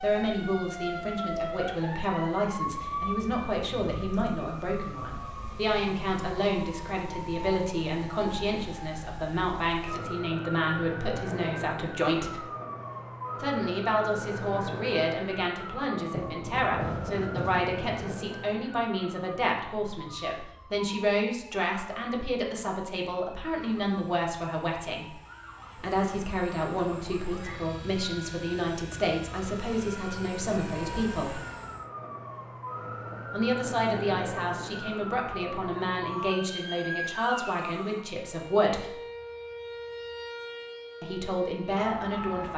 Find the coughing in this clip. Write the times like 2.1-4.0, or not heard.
not heard.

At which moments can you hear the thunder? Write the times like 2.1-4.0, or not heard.
16.1-18.1.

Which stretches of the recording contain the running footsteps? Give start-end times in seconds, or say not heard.
not heard.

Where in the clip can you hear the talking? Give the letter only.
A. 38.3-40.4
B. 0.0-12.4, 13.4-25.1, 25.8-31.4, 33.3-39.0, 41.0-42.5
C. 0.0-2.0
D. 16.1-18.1
B.